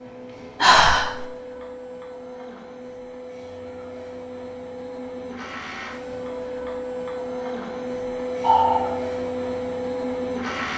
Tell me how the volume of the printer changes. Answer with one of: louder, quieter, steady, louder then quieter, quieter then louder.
louder.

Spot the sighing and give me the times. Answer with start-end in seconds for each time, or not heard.
0.6-1.2, 8.4-8.9.